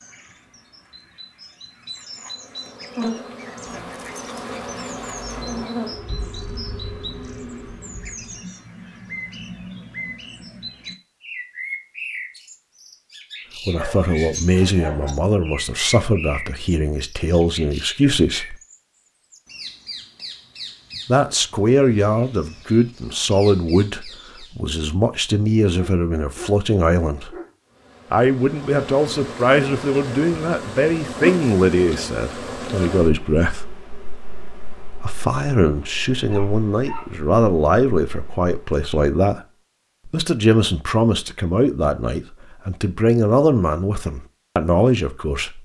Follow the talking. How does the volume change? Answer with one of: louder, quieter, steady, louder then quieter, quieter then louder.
steady.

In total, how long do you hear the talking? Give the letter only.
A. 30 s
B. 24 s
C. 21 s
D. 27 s
D.